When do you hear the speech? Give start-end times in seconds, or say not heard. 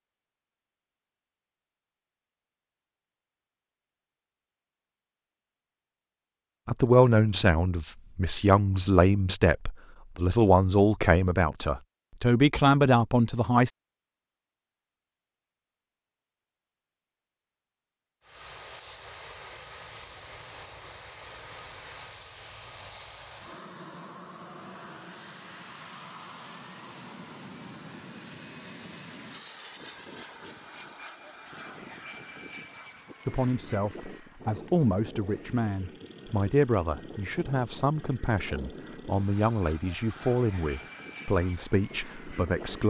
6.7-13.7, 33.2-42.8.